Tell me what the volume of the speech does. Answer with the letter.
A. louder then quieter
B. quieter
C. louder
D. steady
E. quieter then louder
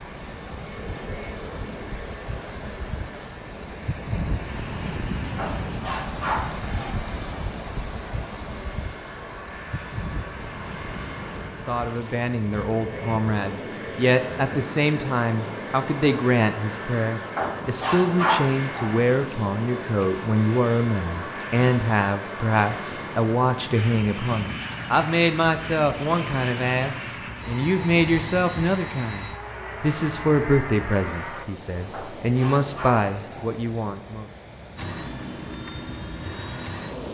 D.